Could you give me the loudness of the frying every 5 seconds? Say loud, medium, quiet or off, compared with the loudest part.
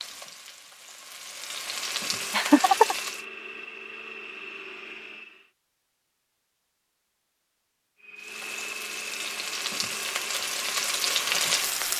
medium, medium, loud.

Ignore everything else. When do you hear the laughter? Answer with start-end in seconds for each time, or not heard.
2.3-3.0.